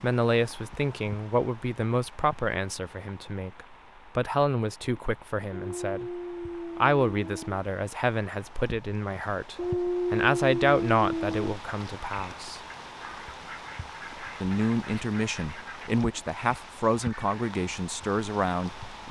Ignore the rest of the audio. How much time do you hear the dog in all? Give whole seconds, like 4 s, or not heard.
4 s.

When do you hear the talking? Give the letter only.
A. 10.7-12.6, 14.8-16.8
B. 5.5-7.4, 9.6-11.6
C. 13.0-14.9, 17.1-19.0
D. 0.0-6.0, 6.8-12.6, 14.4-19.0
D.